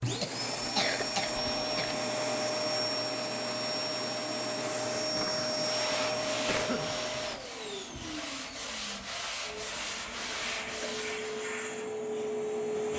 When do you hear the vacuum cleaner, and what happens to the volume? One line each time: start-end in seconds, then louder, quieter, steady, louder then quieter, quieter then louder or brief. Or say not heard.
0.0-12.9 quieter then louder.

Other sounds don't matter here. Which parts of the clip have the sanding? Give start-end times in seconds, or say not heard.
5.5-11.5.